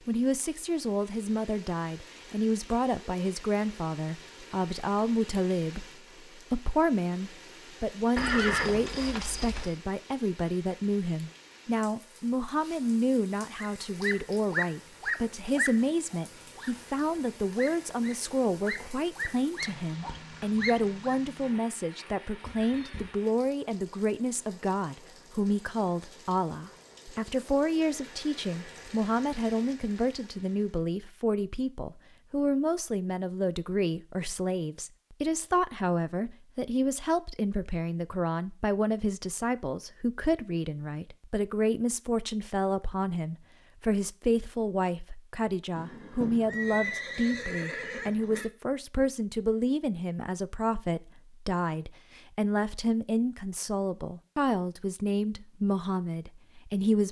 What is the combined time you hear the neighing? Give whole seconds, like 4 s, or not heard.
5 s.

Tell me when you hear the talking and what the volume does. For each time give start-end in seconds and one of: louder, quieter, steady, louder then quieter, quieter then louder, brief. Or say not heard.
0.1-57.0 steady.